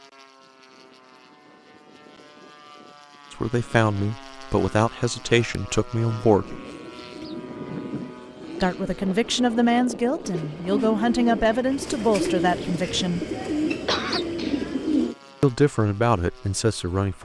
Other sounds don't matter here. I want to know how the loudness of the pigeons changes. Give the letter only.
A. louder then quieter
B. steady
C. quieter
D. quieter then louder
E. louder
E.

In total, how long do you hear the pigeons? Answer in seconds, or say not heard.
9 s.